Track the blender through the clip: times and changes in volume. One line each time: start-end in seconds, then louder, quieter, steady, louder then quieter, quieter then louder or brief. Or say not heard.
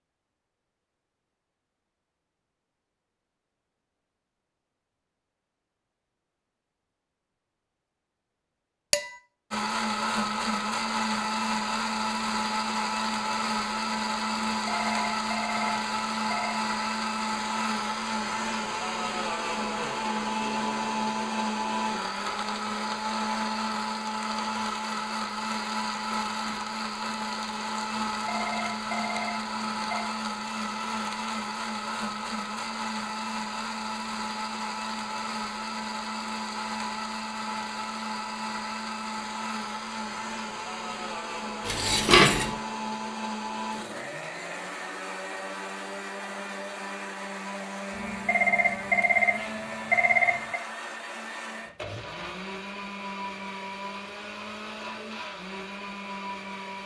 9.5-56.8 quieter.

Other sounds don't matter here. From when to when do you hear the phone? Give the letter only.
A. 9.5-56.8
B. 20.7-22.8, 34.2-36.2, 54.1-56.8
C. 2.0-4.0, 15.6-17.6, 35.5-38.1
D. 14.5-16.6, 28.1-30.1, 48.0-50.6
D.